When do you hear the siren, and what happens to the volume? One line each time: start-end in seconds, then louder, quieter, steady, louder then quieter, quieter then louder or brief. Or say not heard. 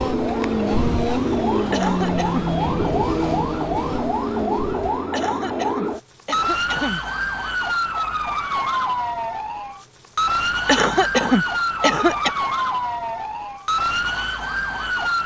0.0-15.2 steady.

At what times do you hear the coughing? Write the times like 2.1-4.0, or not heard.
1.7-2.9, 5.1-7.0, 10.7-12.3.